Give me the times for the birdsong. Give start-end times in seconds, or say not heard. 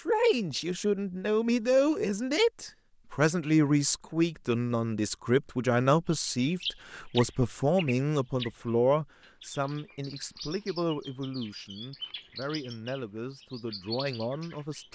6.1-14.9.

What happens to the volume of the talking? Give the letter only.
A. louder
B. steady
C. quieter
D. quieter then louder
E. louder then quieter
C.